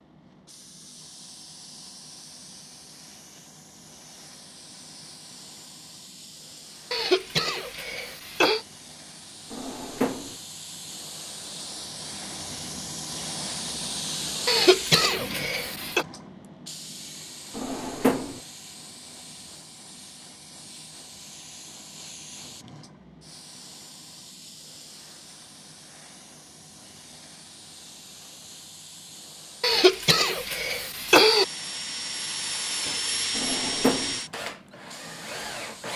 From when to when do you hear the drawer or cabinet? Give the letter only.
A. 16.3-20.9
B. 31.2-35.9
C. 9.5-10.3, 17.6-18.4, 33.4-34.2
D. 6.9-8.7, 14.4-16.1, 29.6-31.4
C.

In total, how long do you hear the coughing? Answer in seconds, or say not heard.
5 s.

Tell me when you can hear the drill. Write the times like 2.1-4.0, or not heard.
31.2-35.9.